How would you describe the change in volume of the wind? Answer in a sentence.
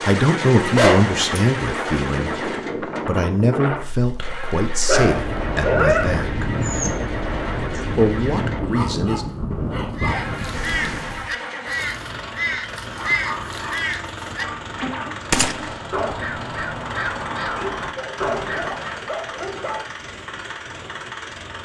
The volume of the wind stays about the same.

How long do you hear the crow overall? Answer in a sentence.
The crow can be heard for 9 seconds in total.